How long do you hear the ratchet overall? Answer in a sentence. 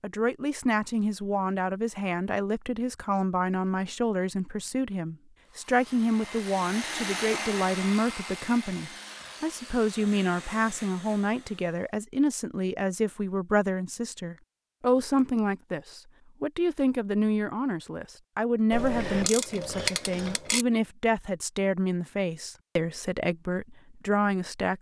You can hear the ratchet for 2 seconds altogether.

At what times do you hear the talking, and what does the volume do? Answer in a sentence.
You can hear the talking from 0.0 to 24.7 s, at a steady volume.